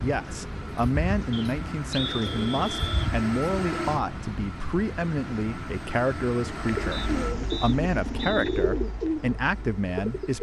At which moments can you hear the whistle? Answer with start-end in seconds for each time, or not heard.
1.3-3.1, 6.9-8.5.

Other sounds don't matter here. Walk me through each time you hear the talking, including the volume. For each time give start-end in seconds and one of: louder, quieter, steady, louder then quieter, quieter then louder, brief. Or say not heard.
0.0-10.3 steady.